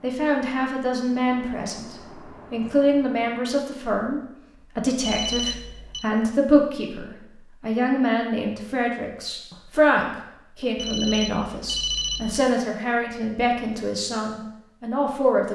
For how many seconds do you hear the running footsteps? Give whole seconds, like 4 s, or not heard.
not heard.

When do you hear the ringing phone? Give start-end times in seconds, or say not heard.
5.0-6.0, 10.8-12.4.